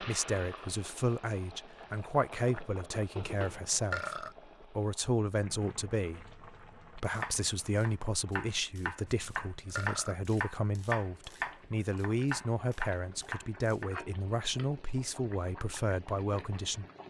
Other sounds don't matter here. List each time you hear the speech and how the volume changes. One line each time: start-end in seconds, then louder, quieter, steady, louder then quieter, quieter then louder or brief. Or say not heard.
0.0-16.9 steady.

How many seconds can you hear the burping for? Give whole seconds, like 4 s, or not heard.
2 s.